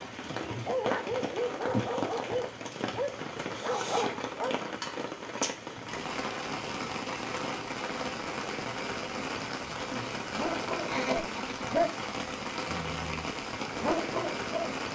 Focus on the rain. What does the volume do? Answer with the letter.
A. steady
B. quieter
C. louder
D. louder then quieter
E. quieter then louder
A.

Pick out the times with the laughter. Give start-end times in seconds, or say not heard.
10.8-11.8.